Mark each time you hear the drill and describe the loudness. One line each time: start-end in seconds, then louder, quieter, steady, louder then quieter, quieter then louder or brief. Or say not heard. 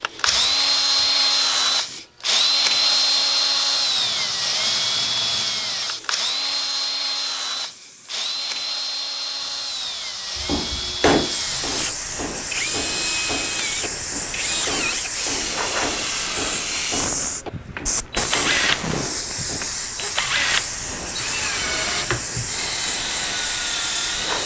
0.0-24.4 quieter.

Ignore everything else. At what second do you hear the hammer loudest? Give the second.
11 s.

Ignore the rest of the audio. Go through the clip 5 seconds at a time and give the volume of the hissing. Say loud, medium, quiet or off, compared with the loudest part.
quiet, quiet, loud, loud, loud.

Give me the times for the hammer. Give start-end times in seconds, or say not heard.
10.3-19.8.